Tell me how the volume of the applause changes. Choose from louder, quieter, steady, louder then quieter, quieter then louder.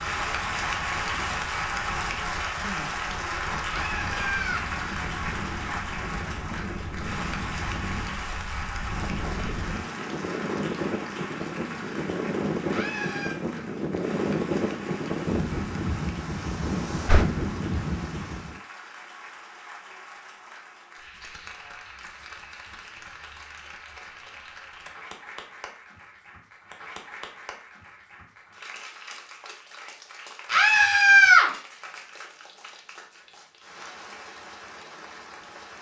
quieter.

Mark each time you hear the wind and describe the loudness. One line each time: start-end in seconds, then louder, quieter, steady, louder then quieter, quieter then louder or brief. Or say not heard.
0.0-18.6 louder.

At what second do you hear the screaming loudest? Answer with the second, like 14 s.
31 s.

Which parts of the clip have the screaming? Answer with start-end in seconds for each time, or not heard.
3.6-4.7, 12.7-13.3, 30.5-31.5.